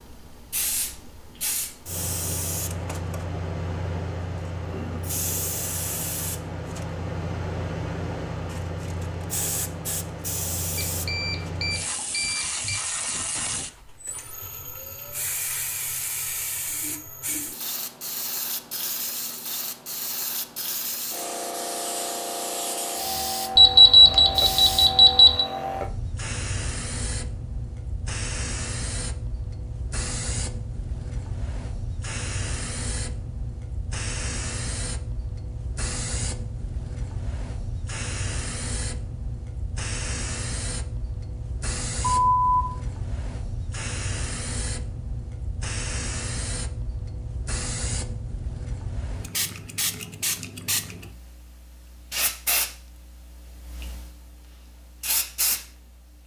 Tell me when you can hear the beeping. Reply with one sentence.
You can hear the beeping from 10.8 to 12.8 s, from 23.6 to 25.4 s and from 42.1 to 42.6 s.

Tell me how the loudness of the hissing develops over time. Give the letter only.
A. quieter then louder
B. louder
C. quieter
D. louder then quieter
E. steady
E.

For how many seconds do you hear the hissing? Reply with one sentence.
The hissing can be heard for 56 seconds in total.